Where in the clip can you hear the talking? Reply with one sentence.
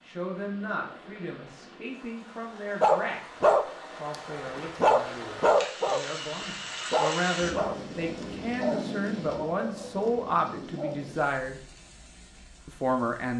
The talking can be heard from 0.0 to 3.2 s, from 4.0 to 11.6 s and from 12.7 to 13.3 s.